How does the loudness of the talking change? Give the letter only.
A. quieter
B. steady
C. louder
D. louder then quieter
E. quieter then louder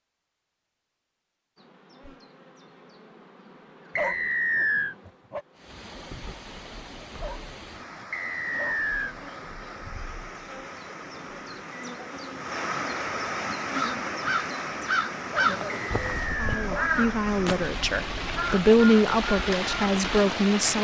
D.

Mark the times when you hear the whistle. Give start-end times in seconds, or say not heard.
4.0-5.0, 8.1-9.2, 15.7-16.7.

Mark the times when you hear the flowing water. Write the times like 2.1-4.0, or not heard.
5.5-20.8.